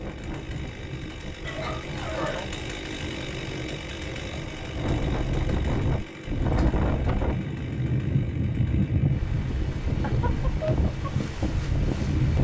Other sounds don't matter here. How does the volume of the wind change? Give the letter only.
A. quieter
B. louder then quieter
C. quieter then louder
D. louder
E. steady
D.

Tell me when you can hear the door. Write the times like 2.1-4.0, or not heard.
6.4-6.8.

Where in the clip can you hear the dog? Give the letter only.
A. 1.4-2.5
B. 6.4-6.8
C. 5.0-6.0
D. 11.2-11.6
A.